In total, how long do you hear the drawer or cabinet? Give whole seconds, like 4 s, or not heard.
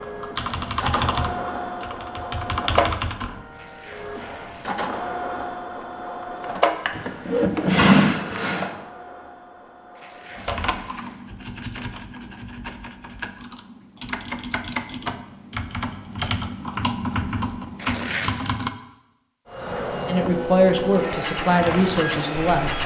2 s.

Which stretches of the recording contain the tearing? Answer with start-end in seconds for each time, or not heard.
3.5-5.2, 9.9-11.2, 17.8-18.5.